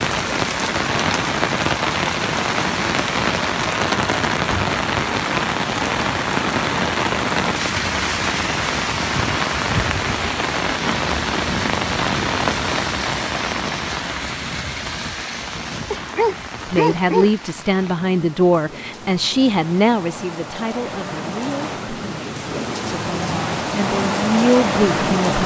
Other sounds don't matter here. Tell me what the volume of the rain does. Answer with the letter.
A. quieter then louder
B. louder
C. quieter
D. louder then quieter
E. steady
A.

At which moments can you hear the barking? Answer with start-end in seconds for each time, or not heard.
15.9-17.3.